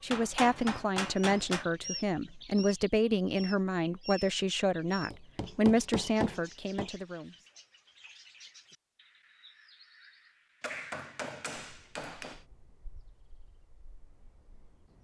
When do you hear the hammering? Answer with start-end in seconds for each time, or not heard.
0.1-1.7, 5.1-6.9, 10.6-12.4.